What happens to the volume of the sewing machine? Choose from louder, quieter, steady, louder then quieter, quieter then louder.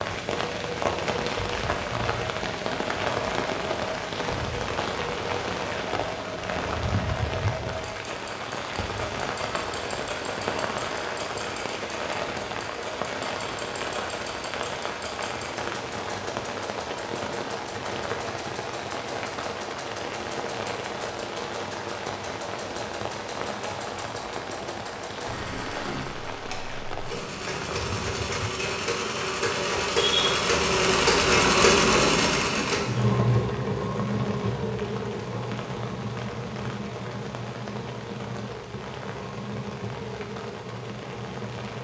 louder then quieter.